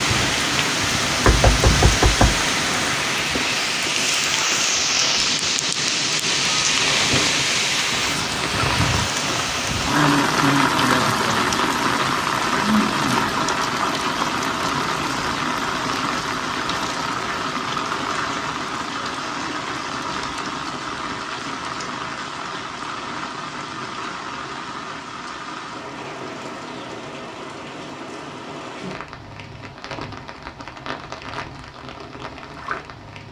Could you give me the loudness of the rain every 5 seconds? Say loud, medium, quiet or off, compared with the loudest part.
loud, loud, loud, medium, medium, quiet, quiet.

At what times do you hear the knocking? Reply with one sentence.
The knocking can be heard from 1.2 to 2.5 s.